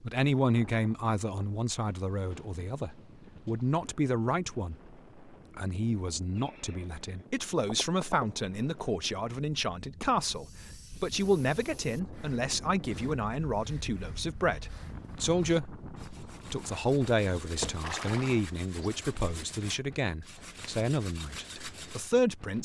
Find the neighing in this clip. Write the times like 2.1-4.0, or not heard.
6.3-8.3, 17.6-18.9.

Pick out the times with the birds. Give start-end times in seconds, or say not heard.
not heard.